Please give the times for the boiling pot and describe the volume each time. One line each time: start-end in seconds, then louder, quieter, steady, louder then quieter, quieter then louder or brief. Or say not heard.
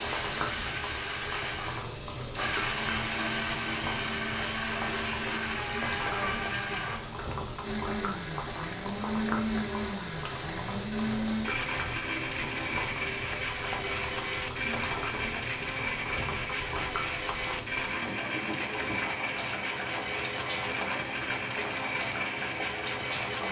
0.0-23.4 steady.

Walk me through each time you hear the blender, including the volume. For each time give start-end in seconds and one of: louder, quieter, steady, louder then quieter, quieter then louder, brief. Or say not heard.
0.0-23.4 steady.